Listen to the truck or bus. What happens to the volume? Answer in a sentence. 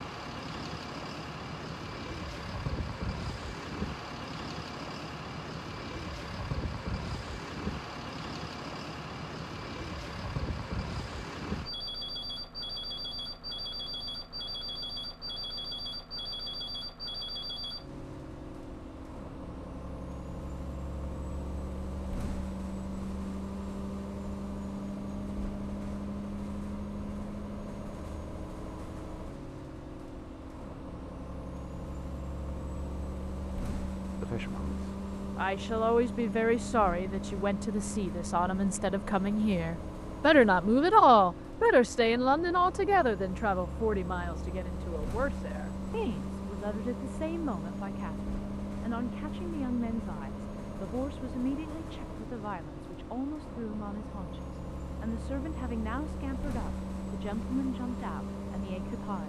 The volume of the truck or bus stays about the same.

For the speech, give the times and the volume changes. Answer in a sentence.
The speech can be heard from 34.1 to 59.2 s, getting louder then quieter.